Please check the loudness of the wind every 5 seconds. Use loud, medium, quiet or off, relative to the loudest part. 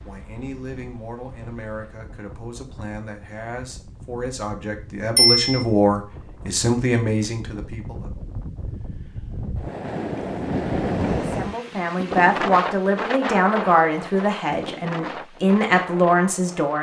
quiet, medium, loud, medium.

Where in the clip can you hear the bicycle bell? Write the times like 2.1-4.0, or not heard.
5.2-5.6.